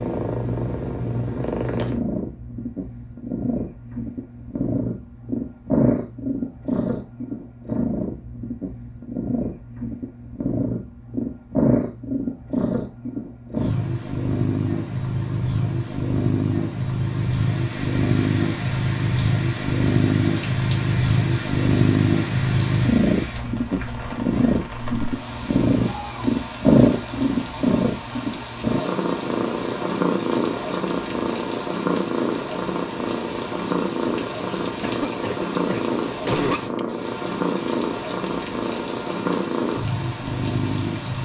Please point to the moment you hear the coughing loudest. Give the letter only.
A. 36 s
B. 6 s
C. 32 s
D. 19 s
A.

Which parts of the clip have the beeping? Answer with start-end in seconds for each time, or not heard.
not heard.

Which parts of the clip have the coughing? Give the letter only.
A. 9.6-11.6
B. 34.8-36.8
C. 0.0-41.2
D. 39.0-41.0
B.